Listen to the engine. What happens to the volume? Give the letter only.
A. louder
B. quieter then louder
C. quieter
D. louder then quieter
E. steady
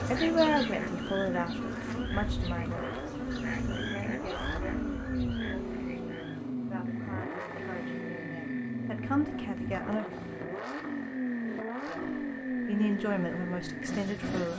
E.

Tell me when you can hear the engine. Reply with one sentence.
The engine can be heard from 0.0 to 14.5 s.